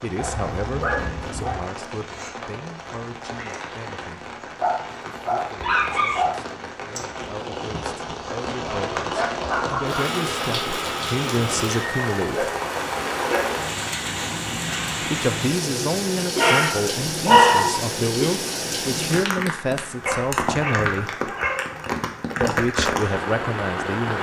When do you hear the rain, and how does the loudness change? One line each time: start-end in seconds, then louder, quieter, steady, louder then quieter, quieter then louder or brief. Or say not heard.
0.0-24.1 louder.